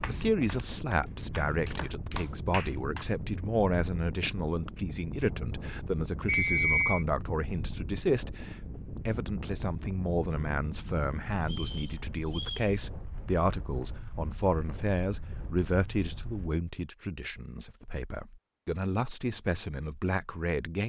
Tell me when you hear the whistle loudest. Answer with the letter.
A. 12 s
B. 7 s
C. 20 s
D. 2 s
B.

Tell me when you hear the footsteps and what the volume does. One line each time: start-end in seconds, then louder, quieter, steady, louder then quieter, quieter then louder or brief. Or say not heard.
not heard.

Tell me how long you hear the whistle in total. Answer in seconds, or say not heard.
2 s.